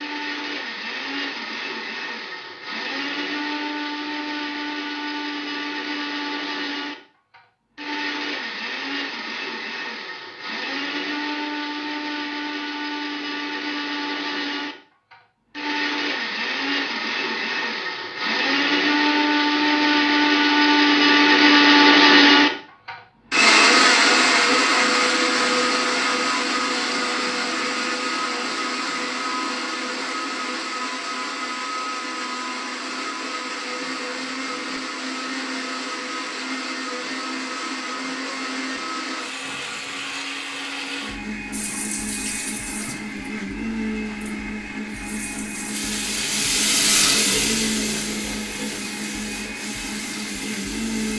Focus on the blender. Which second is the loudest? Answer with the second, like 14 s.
22 s.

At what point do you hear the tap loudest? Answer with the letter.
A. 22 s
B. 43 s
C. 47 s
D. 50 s
C.